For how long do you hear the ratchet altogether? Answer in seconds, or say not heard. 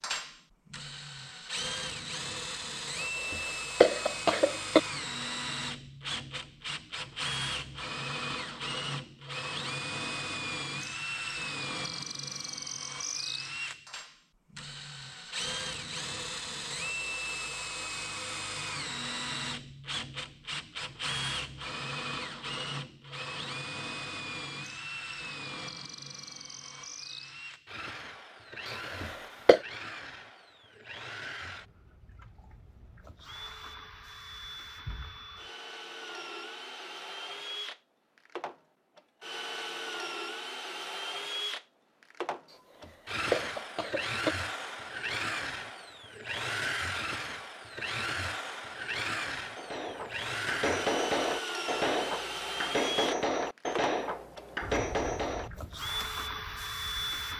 not heard.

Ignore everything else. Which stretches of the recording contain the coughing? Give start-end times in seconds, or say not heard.
3.0-4.8, 28.7-29.6, 42.5-44.4.